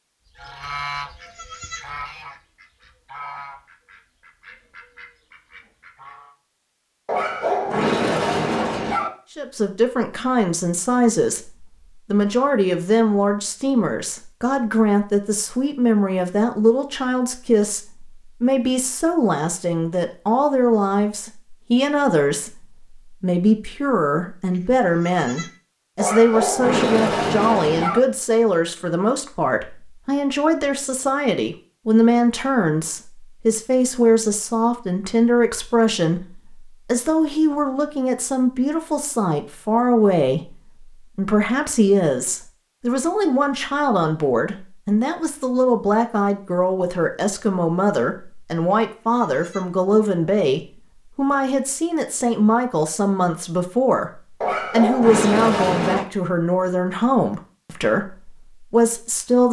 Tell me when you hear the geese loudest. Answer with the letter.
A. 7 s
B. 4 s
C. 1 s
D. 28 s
C.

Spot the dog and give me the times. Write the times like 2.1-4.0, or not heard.
7.0-9.1, 25.9-28.0, 54.4-56.0.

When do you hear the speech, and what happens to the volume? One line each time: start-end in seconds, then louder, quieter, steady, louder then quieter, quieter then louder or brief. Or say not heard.
9.3-59.4 steady.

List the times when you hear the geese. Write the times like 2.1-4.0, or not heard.
0.3-6.3.